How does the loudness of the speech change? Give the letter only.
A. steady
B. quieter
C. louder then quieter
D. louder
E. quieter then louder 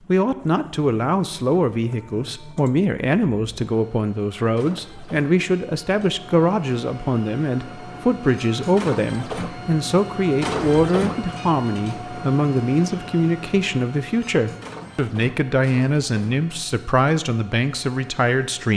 A.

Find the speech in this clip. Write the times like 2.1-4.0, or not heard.
0.1-18.7.